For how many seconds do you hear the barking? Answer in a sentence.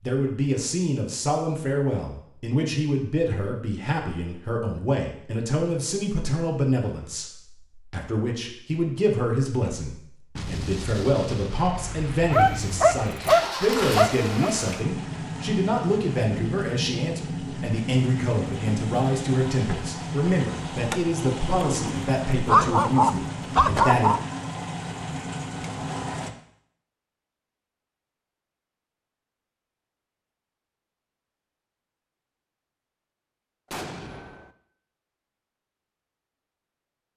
The barking can be heard for 5 seconds in total.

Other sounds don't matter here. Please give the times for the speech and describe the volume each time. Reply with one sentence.
You can hear the speech from 0.0 to 24.1 s, at a steady volume.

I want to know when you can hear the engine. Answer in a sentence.
You can hear the engine from 12.3 to 26.3 s.